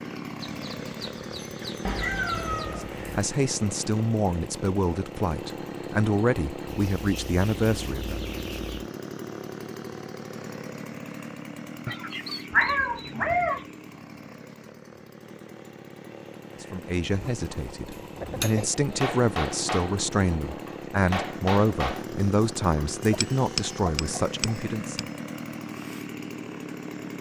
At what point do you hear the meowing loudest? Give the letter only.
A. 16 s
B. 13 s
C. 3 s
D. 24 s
B.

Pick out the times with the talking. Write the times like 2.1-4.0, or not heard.
2.6-8.2, 16.6-25.1.